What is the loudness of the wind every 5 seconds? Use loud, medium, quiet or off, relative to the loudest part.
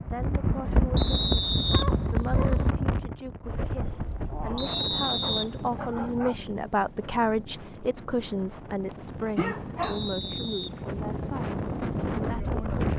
loud, medium, loud.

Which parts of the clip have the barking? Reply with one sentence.
The barking can be heard from 1.7 to 2.8 s, from 4.5 to 6.3 s and from 8.9 to 10.0 s.